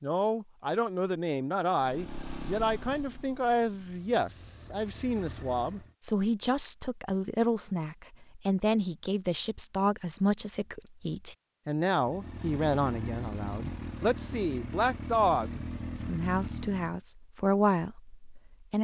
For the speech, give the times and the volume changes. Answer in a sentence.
You can hear the speech from 0.0 to 18.7 s, at a steady volume.